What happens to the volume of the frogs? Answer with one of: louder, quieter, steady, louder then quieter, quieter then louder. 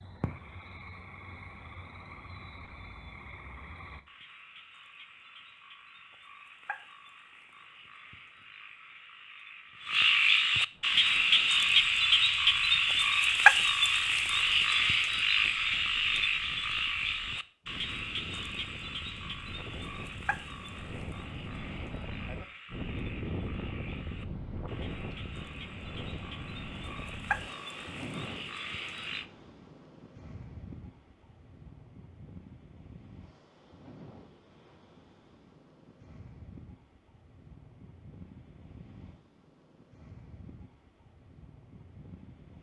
louder then quieter.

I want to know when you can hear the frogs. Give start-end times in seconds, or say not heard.
0.0-29.2.